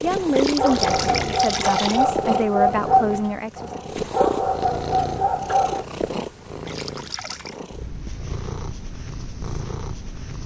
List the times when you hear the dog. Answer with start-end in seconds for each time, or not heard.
0.4-5.8.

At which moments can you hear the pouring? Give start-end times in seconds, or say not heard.
0.3-2.0, 6.7-7.5.